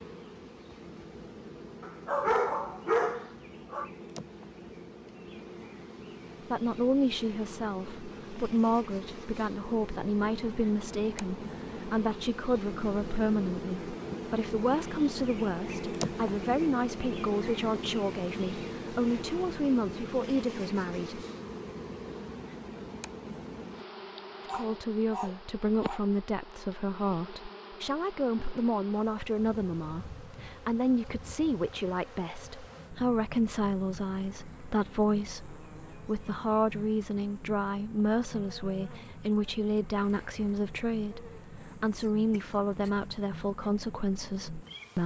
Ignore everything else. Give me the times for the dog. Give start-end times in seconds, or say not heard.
1.8-3.9, 24.4-26.0.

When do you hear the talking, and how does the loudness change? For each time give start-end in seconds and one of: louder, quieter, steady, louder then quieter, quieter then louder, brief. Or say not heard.
6.5-21.2 steady
24.5-45.0 steady.